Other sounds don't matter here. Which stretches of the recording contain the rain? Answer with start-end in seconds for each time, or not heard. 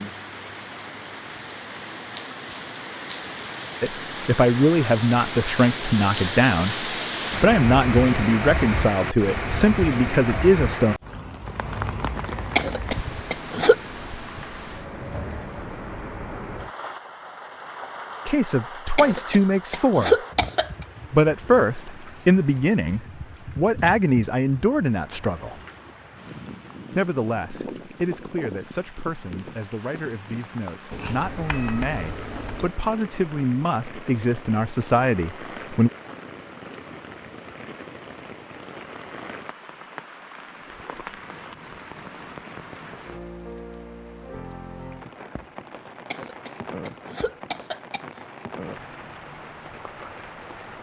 0.0-50.7.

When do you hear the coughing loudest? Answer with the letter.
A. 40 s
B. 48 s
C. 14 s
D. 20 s
D.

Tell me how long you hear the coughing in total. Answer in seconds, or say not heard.
5 s.